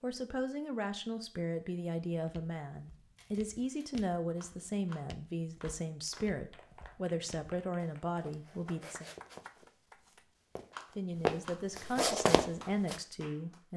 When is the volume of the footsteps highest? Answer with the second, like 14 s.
12 s.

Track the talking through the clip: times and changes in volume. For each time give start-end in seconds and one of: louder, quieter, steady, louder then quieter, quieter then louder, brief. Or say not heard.
0.0-9.1 steady
10.9-13.7 brief.